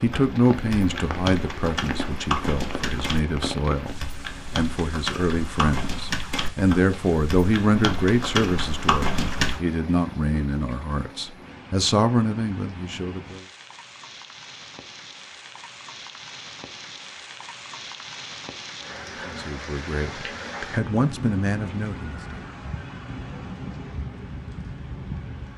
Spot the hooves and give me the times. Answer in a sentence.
The hooves can be heard from 0.0 to 9.6 s.